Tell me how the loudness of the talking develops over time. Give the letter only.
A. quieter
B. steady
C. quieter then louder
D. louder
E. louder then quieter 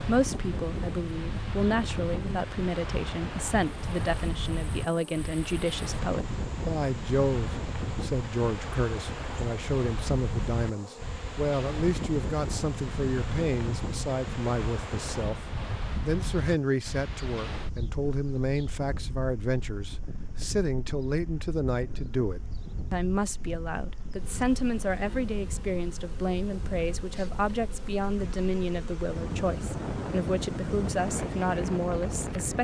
B.